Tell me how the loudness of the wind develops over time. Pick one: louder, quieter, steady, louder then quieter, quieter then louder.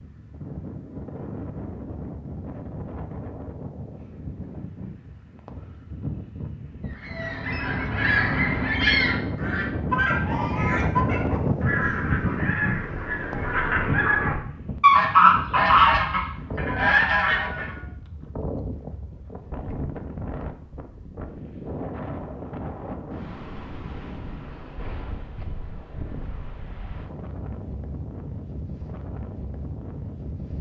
louder then quieter.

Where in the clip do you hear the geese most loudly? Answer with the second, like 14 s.
15 s.